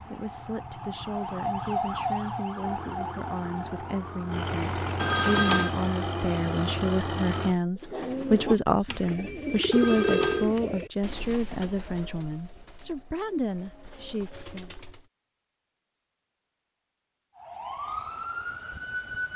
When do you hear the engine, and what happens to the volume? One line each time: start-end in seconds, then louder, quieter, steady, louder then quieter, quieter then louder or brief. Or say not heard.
2.5-7.5 louder.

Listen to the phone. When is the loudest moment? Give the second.
5 s.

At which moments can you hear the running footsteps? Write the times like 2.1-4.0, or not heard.
not heard.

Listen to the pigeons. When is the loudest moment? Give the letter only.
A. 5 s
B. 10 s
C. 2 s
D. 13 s
B.